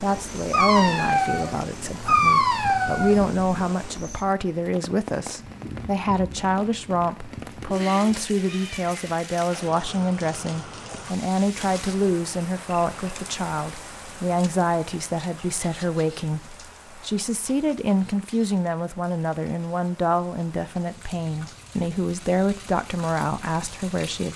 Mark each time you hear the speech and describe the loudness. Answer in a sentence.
You can hear the speech from 0.0 to 24.3 s, at a steady volume.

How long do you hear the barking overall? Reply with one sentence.
The barking can be heard for 4 seconds in total.